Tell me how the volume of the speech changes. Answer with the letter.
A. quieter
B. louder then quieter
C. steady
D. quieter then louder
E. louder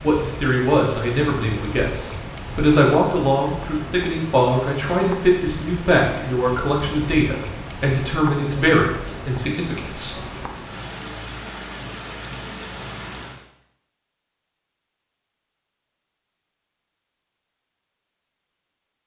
C.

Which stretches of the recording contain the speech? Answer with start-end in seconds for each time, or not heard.
0.0-10.2.